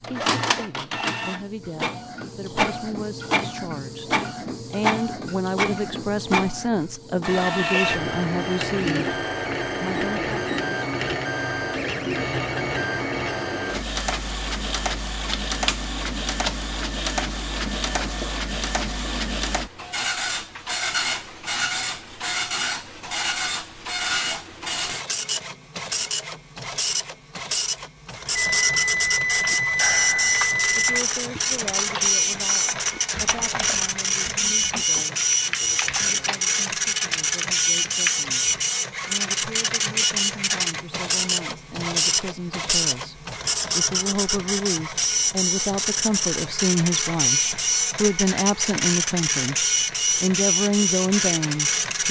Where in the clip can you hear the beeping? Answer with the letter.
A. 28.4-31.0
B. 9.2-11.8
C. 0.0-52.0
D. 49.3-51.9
A.